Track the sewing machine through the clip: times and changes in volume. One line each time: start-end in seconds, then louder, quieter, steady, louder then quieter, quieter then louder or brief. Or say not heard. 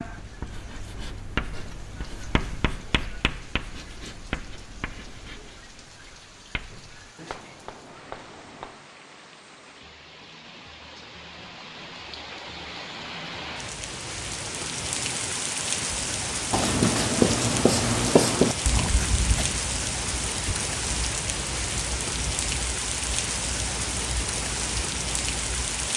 not heard.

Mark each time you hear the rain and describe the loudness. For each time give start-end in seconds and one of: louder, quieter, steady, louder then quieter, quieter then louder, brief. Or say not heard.
0.0-25.9 louder.